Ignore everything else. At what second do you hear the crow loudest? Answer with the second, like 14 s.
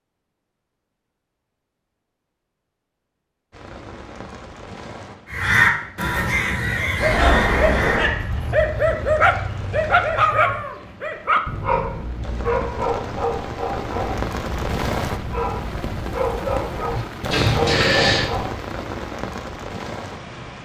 6 s.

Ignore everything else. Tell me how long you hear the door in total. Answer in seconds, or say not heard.
2 s.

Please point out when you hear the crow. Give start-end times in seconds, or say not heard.
5.2-10.8.